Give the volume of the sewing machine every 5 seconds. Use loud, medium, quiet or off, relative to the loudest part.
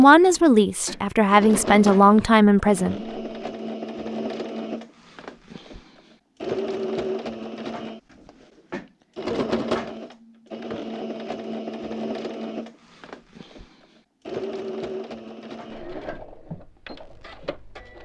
loud, loud, loud, medium.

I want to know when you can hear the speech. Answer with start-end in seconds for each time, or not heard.
0.0-3.0.